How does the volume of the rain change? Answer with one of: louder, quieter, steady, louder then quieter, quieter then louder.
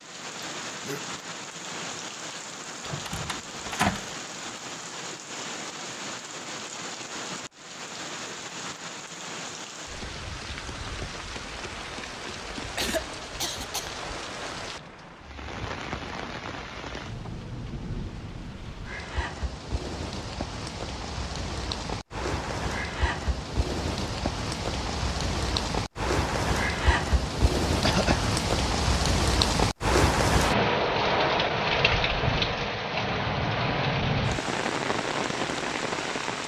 louder.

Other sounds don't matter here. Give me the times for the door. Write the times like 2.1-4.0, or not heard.
2.8-4.1.